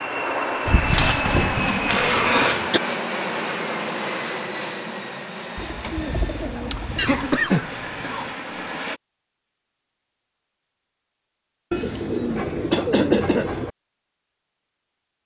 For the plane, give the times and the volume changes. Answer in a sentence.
The plane can be heard from 0.0 to 9.0 s, getting quieter.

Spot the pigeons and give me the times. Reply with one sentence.
The pigeons can be heard from 0.7 to 2.5 s, from 5.5 to 7.3 s and from 11.7 to 13.7 s.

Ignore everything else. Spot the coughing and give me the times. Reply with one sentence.
You can hear the coughing from 1.9 to 2.8 s, from 7.0 to 8.3 s and from 12.7 to 13.4 s.